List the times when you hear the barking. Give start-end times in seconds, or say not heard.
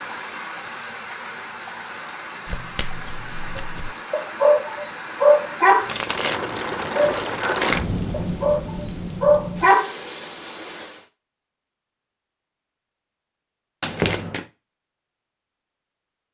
3.5-9.9.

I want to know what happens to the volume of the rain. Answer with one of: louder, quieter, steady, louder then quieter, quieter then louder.
louder then quieter.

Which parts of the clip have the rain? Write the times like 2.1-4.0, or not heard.
0.0-11.1.